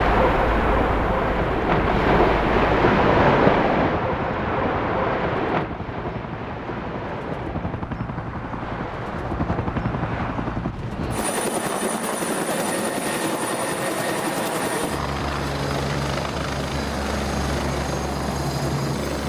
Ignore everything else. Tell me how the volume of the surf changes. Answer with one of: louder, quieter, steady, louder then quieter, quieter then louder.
quieter.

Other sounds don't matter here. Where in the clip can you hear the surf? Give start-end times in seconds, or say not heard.
0.0-19.2.